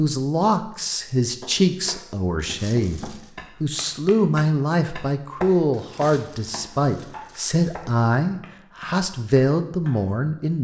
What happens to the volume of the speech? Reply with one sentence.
The volume of the speech stays about the same.